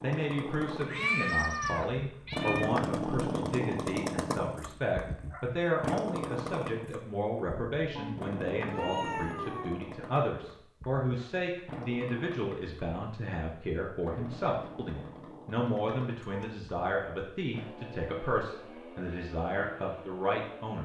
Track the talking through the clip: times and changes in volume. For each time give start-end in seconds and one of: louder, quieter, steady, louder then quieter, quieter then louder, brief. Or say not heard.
0.0-20.8 steady.